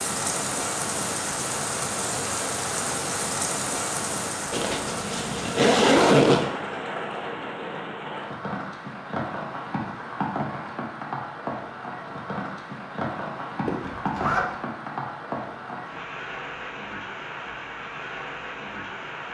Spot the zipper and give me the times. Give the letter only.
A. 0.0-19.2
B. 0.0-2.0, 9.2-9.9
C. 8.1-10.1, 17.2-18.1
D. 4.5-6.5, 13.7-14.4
D.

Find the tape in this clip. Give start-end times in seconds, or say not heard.
not heard.